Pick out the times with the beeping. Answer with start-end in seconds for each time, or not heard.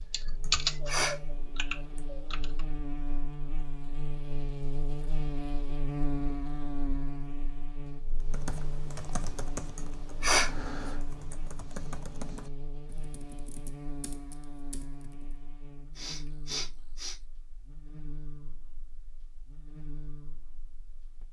not heard.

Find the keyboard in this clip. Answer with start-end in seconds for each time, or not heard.
0.0-2.6, 8.2-15.4.